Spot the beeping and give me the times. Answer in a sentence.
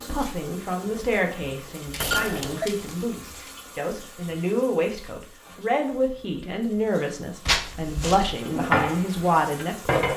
You can hear the beeping from 2.0 to 2.7 s.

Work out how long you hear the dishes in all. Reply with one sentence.
The dishes can be heard for 2 seconds in total.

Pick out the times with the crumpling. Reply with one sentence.
You can hear the crumpling from 1.9 to 3.5 s and from 7.5 to 8.2 s.